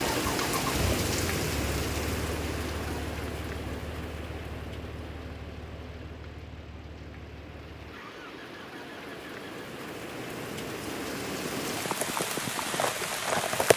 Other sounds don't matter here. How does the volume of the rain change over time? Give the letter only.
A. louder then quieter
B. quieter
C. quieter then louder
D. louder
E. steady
C.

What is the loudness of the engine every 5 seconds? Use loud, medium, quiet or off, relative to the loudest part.
loud, medium, off.